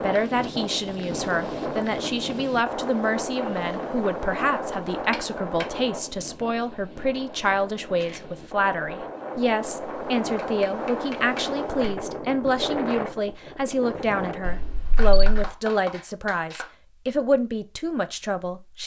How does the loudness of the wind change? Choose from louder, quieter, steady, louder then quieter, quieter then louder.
quieter then louder.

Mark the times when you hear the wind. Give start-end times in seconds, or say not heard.
0.0-14.5.